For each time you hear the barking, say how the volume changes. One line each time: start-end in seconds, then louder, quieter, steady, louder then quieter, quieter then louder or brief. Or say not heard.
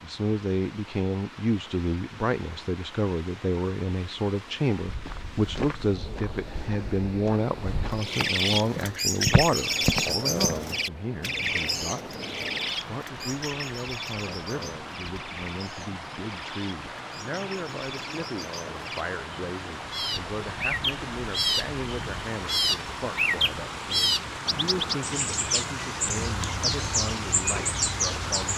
not heard.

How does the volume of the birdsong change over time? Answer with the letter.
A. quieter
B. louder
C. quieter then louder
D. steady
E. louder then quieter
C.